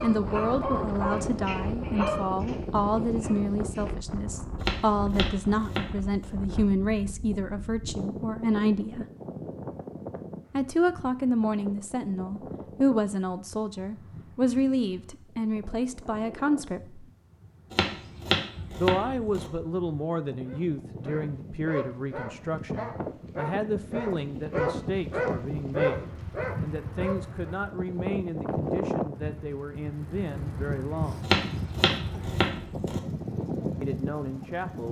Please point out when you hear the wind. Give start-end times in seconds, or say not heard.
0.0-34.8.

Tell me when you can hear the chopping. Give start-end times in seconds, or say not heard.
4.6-6.3, 17.7-19.5, 31.2-33.0.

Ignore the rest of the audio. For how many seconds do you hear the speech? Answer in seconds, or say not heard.
29 s.